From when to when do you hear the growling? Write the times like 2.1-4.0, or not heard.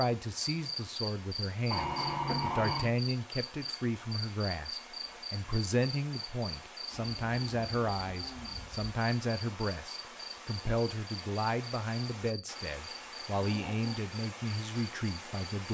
1.7-2.9, 6.9-8.9, 13.3-14.0.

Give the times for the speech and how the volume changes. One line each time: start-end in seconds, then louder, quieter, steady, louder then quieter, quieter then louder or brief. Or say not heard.
0.0-15.6 steady.